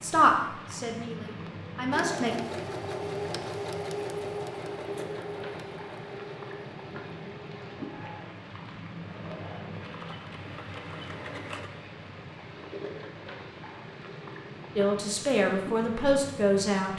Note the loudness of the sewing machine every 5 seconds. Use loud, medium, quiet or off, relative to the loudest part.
loud, medium, medium, off.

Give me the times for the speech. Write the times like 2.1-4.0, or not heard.
0.0-2.3, 14.8-16.9.